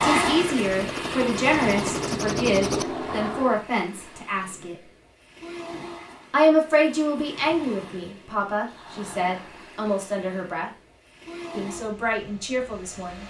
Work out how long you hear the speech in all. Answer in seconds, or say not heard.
11 s.